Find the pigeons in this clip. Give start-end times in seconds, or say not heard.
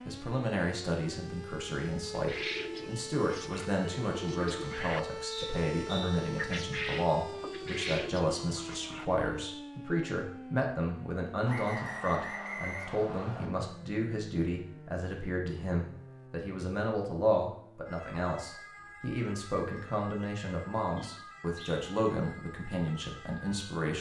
2.0-9.2.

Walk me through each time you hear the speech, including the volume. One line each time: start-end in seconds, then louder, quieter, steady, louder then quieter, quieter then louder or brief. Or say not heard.
0.1-23.9 steady.